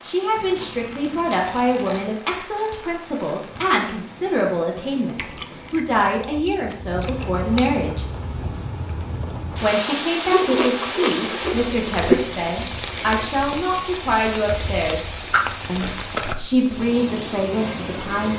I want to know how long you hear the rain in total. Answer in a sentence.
You can hear the rain for 18 seconds altogether.